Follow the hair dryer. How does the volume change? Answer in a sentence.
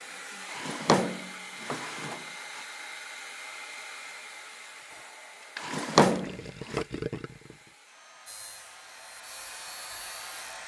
The loudness of the hair dryer goes down, then up.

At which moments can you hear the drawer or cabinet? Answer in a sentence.
You can hear the drawer or cabinet from 0.5 to 2.6 s and from 5.5 to 6.8 s.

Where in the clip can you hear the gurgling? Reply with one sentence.
The gurgling can be heard from 4.9 to 7.7 s.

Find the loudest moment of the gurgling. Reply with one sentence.
The loudest moment of the gurgling is at 7 seconds.